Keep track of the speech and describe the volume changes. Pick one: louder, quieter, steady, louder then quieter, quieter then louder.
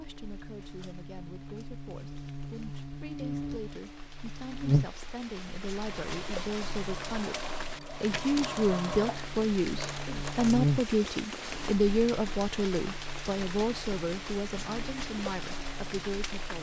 louder then quieter.